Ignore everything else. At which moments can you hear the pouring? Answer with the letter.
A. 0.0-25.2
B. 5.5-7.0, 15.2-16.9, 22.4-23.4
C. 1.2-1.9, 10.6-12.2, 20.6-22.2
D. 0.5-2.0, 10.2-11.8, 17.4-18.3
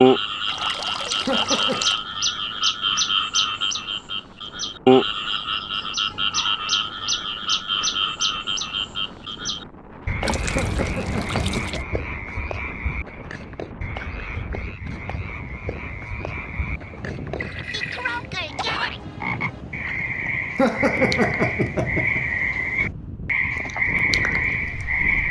D.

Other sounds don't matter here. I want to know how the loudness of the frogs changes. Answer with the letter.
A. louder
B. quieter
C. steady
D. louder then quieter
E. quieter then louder
E.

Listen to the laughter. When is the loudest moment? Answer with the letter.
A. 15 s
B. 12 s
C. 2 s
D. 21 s
D.